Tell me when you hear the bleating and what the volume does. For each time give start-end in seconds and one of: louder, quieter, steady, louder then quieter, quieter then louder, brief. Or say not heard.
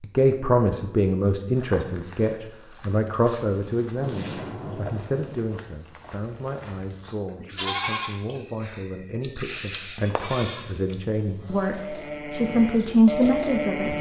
7.2-13.9 quieter then louder.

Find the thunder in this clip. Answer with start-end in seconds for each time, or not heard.
4.0-5.4.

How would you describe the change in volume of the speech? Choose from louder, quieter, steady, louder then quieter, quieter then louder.
quieter then louder.